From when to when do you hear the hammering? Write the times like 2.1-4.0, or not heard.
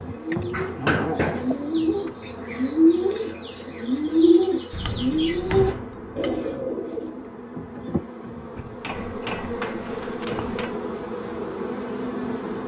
0.3-2.1, 4.7-6.4, 8.6-10.8.